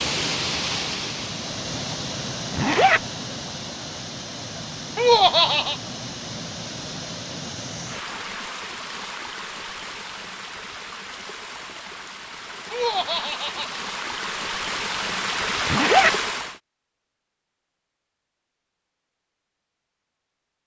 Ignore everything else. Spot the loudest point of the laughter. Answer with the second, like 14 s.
5 s.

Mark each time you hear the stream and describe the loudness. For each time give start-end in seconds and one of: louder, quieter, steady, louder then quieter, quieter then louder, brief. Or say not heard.
0.0-16.6 quieter then louder.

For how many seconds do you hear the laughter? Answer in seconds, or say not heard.
2 s.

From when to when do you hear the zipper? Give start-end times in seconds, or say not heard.
2.5-3.0, 15.7-16.1.